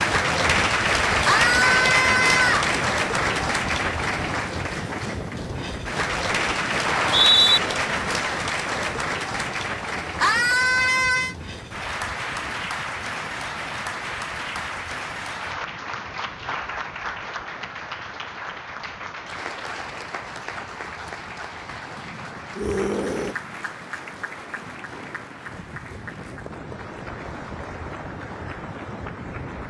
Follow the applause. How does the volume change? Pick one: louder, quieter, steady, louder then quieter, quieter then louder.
quieter.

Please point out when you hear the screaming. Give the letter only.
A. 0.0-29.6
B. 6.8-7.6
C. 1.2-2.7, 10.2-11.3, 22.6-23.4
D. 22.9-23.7
C.